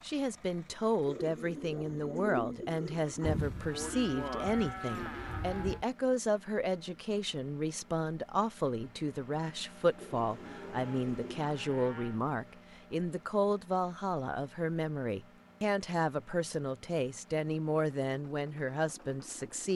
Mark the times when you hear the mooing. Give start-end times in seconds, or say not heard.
3.2-5.8, 10.4-12.2.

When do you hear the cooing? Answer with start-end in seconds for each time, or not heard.
1.1-3.5, 9.9-11.5.